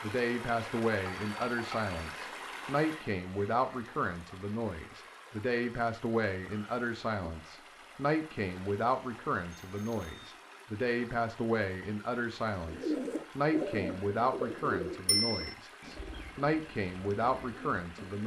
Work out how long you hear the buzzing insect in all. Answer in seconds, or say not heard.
not heard.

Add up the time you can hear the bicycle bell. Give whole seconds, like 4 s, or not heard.
2 s.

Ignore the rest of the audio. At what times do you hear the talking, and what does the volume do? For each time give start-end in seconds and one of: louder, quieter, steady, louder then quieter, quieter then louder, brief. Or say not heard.
0.0-18.2 steady.